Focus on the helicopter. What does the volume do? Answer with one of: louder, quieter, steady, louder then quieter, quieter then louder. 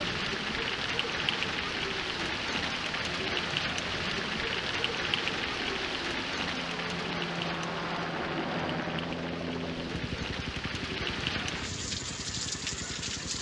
louder then quieter.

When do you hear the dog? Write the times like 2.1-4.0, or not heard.
not heard.